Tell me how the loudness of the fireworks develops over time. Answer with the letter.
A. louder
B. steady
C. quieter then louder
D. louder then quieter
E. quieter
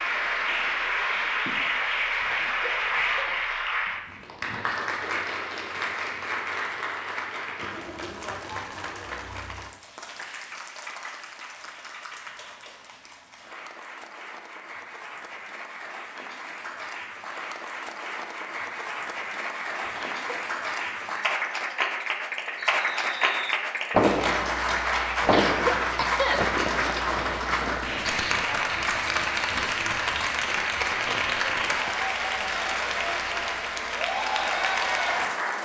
E.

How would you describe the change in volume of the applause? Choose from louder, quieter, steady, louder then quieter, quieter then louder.
quieter then louder.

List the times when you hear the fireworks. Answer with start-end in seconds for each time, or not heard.
22.6-31.9.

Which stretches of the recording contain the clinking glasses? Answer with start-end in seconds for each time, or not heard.
not heard.